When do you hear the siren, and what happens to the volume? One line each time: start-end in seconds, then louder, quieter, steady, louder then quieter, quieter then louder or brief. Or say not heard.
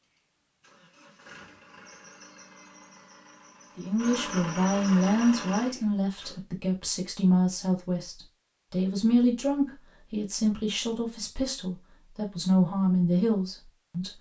not heard.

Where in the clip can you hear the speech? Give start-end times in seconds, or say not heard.
3.8-14.1.